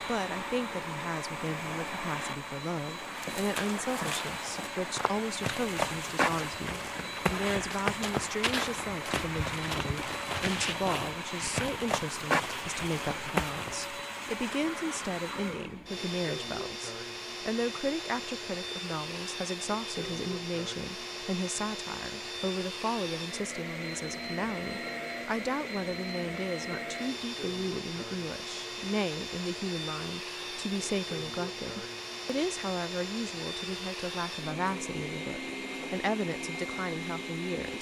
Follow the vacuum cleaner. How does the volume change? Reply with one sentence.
The volume of the vacuum cleaner stays about the same.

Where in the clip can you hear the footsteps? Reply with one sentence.
The footsteps can be heard from 3.1 to 14.0 s.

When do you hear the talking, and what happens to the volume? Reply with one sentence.
The talking can be heard from 0.0 to 37.7 s, at a steady volume.